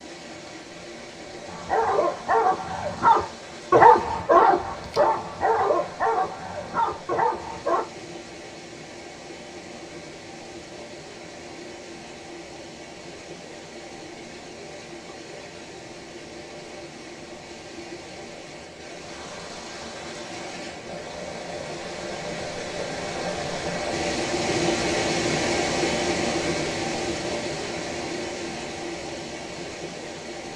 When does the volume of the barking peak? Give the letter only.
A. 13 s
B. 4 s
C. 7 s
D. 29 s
B.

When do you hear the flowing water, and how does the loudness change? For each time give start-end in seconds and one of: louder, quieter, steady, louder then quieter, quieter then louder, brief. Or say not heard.
0.0-30.5 louder.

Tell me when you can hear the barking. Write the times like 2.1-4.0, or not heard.
1.4-7.8.